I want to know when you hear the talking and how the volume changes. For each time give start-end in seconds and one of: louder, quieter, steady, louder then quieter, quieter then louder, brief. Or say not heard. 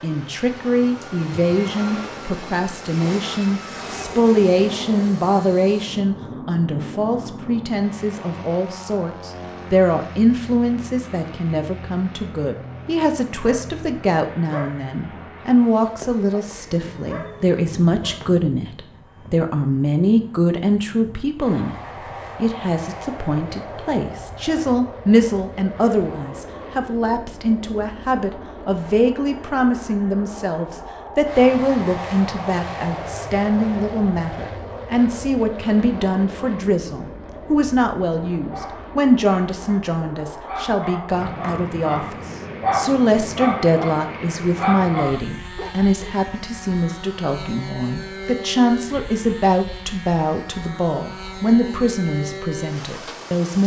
0.0-21.8 steady
22.4-53.6 steady.